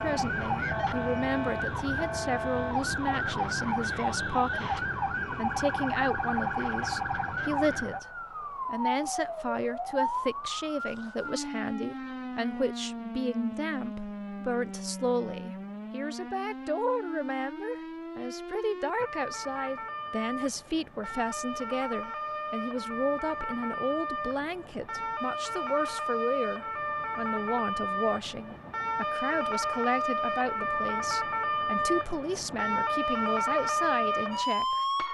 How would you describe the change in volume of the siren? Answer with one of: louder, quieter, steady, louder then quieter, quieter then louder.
quieter then louder.